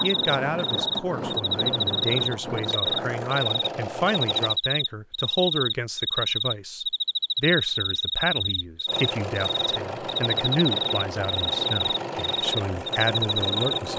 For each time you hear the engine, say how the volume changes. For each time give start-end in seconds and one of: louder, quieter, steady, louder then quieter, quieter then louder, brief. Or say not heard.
0.0-4.6 steady
8.8-13.9 steady.